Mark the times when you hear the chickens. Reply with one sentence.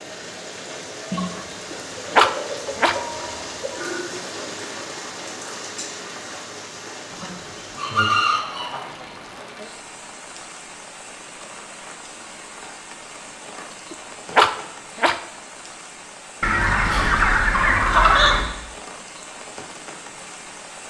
You can hear the chickens from 1.1 to 3.8 s, from 7.1 to 9.4 s and from 16.4 to 18.4 s.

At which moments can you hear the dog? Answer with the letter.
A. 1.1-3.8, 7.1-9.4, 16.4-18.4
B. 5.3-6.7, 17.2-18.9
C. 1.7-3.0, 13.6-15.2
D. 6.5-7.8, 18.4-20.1
C.